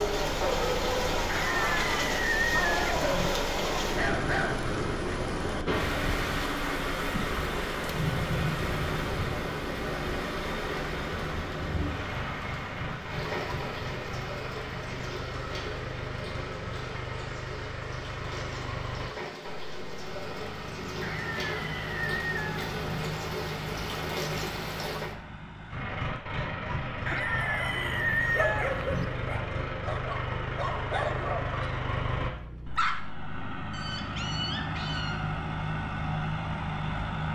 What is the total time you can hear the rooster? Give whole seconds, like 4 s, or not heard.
6 s.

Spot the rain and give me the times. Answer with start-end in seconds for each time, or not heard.
0.0-25.1.